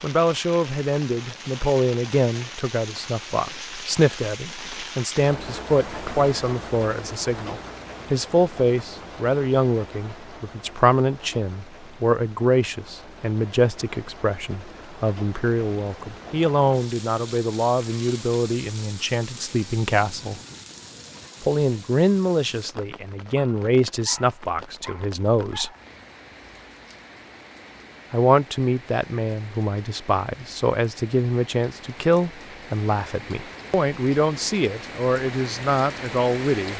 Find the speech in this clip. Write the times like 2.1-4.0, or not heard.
0.0-20.4, 21.4-25.7, 28.1-36.7.